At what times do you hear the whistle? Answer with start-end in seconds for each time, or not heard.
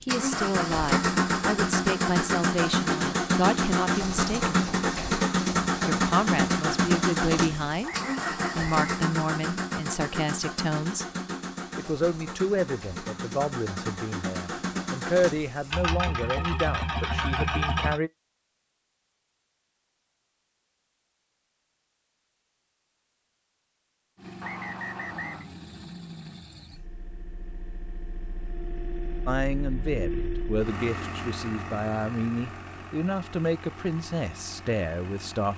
7.8-8.9, 24.4-25.4.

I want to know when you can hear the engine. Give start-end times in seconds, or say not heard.
0.0-18.0, 24.1-35.5.